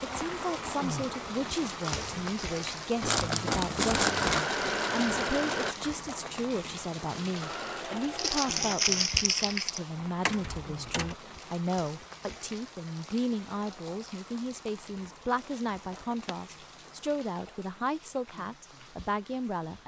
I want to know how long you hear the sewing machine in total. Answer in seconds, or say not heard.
5 s.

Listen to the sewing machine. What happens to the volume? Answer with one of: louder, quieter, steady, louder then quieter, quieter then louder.
quieter then louder.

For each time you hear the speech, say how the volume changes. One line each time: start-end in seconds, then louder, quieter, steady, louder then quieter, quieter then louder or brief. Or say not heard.
0.0-19.8 steady.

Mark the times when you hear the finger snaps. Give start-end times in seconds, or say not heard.
not heard.